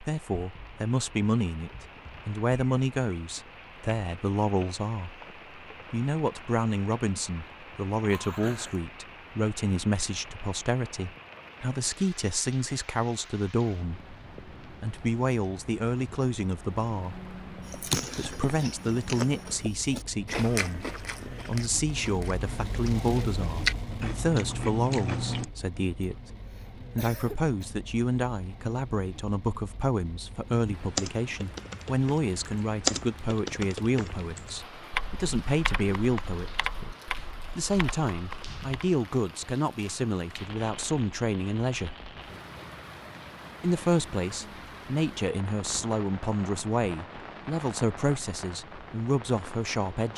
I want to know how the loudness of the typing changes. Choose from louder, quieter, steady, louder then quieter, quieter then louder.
louder then quieter.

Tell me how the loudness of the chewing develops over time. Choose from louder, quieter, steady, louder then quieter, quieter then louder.
quieter then louder.